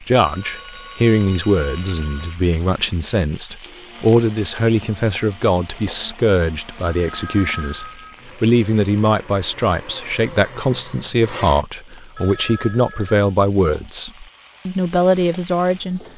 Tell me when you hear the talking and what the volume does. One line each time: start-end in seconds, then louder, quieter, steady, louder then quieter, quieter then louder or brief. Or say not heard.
0.0-16.0 steady.